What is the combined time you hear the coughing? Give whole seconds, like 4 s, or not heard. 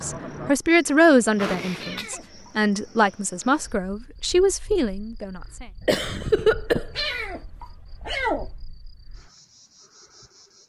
2 s.